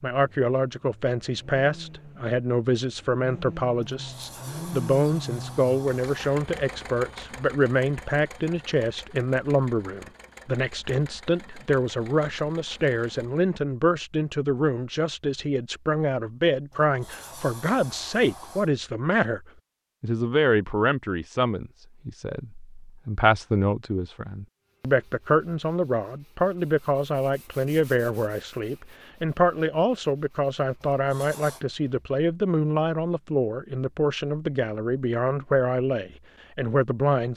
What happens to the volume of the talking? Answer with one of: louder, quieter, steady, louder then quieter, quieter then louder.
steady.